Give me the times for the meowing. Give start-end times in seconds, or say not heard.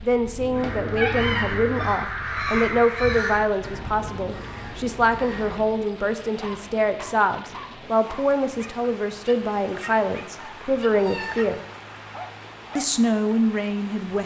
0.3-1.9, 10.4-11.4.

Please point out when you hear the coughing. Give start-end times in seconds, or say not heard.
not heard.